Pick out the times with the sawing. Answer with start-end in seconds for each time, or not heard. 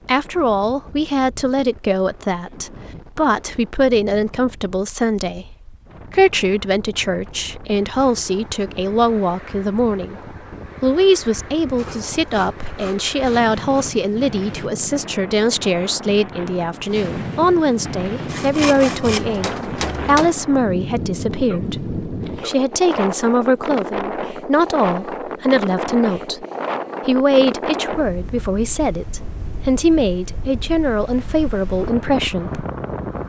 11.8-14.1, 18.2-20.3.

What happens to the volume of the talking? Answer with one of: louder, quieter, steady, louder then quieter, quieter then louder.
steady.